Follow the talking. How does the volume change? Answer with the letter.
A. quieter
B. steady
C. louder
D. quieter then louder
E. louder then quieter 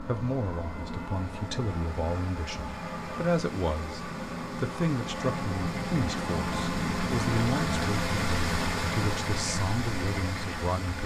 B.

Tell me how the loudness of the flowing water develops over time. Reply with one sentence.
The volume of the flowing water goes up.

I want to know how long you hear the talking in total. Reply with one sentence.
The talking can be heard for 10 seconds in total.